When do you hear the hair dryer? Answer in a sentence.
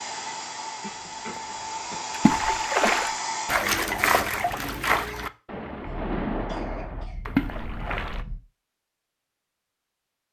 The hair dryer can be heard from 0.0 to 3.5 s.